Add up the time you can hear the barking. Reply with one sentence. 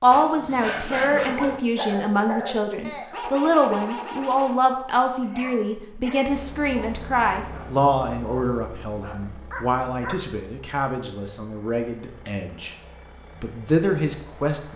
The barking can be heard for 10 seconds in total.